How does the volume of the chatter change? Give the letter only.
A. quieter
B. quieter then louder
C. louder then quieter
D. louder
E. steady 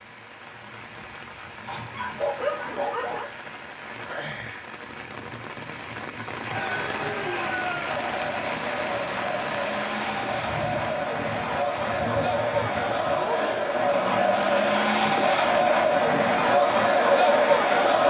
D.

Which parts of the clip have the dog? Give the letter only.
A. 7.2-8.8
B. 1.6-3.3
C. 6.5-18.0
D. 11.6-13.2
B.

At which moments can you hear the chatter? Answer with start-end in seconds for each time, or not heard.
6.5-18.0.